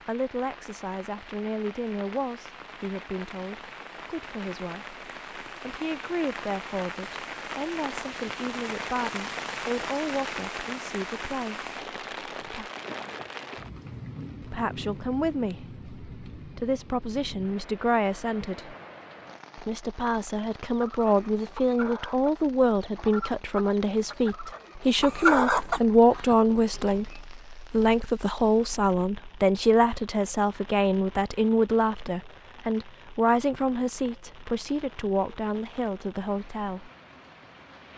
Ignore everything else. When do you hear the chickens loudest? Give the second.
25 s.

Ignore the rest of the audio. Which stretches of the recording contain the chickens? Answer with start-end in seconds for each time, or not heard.
20.7-27.1.